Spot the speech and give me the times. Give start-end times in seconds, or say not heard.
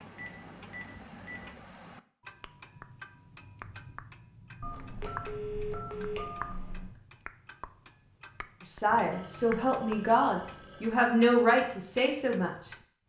8.7-12.5.